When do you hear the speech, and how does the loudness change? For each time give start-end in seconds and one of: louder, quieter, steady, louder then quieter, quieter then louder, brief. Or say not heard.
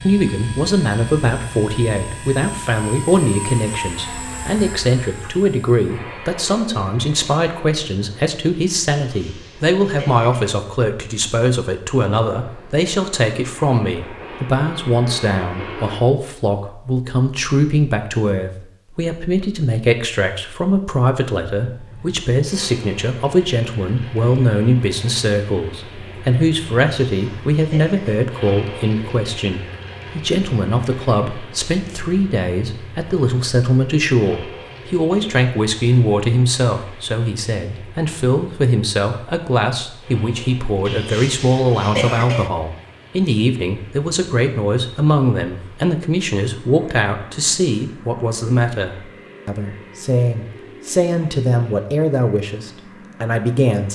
0.0-53.9 steady.